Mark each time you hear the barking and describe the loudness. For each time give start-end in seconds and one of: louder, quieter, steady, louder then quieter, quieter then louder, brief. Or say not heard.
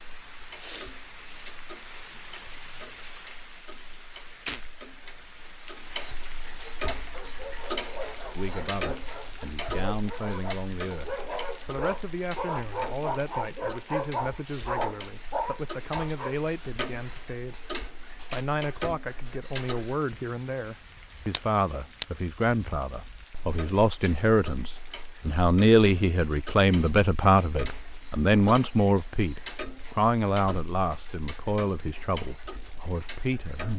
6.8-16.4 louder.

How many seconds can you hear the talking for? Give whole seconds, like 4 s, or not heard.
25 s.